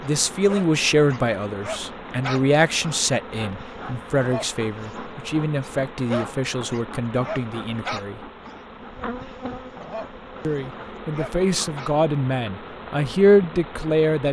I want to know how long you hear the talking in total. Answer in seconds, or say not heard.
12 s.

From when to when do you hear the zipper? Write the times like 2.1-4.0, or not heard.
not heard.